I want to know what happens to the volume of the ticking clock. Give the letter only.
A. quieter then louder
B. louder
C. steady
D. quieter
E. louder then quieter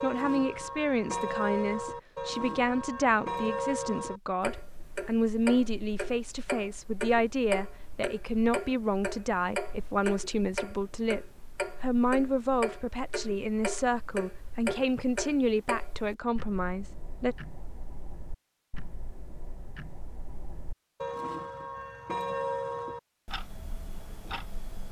A.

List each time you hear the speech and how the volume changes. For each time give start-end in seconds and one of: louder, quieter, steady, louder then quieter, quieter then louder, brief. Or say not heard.
0.0-17.4 steady.